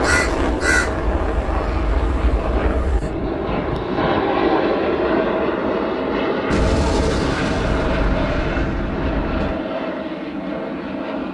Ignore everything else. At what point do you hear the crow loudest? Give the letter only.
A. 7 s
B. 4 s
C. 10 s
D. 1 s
D.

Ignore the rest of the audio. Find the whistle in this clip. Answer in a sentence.
You can't hear the whistle here.